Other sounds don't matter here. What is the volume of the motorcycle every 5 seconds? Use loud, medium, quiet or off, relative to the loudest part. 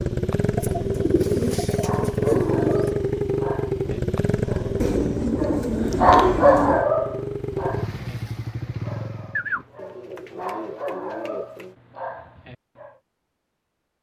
loud, medium, off.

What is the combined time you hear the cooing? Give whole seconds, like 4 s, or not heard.
7 s.